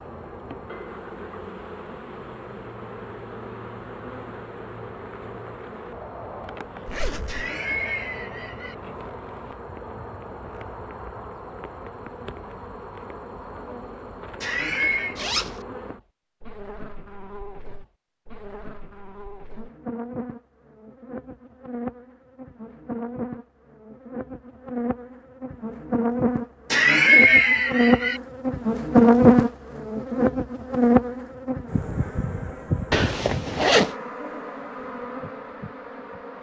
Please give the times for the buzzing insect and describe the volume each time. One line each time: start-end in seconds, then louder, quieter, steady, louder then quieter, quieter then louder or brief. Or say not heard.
0.0-36.3 louder.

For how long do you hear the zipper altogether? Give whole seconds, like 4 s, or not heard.
2 s.